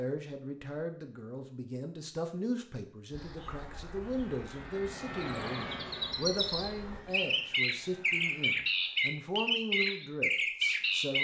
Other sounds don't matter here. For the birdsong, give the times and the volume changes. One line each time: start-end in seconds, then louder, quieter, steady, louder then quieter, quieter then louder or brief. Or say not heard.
3.1-11.1 louder.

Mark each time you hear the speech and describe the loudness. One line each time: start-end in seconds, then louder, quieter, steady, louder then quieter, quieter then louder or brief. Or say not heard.
0.0-11.1 steady.